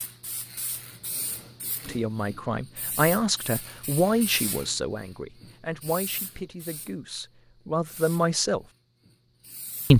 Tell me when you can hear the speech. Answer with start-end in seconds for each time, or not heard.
1.9-8.7.